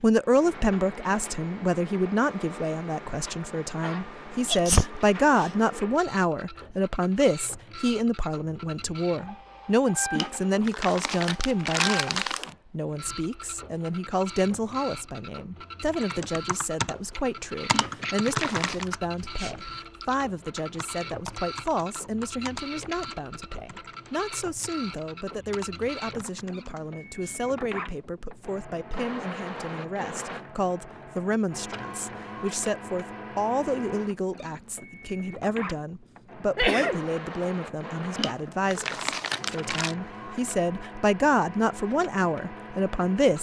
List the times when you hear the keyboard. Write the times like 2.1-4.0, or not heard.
15.9-27.4.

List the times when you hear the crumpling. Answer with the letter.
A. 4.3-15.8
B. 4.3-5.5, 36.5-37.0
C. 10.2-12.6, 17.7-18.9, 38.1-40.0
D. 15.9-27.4
C.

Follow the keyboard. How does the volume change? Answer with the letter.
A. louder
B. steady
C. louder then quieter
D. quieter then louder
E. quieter
E.